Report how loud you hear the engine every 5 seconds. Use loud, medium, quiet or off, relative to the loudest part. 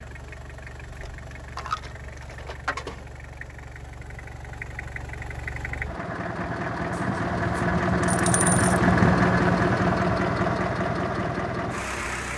quiet, loud, loud.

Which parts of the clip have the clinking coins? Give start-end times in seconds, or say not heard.
0.8-3.0, 7.0-8.8.